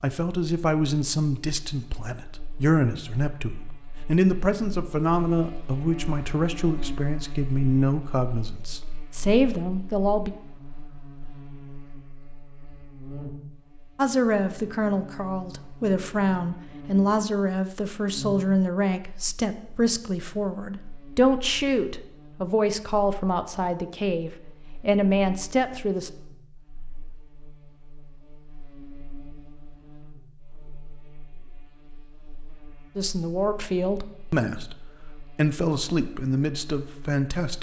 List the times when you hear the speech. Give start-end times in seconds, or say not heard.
0.0-10.3, 13.9-26.1, 33.0-37.5.